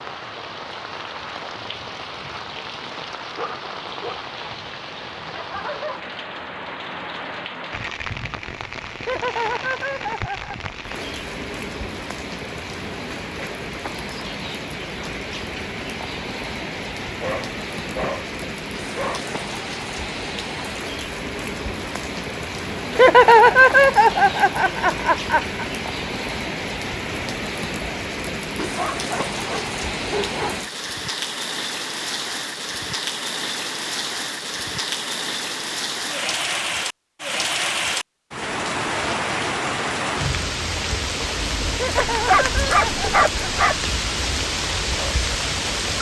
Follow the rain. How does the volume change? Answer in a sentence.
The volume of the rain goes up.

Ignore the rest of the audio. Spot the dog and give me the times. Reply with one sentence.
You can hear the dog from 3.4 to 4.2 s, from 17.2 to 19.2 s, from 28.6 to 30.6 s and from 42.1 to 43.8 s.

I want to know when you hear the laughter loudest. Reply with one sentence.
The loudest moment of the laughter is at 23 seconds.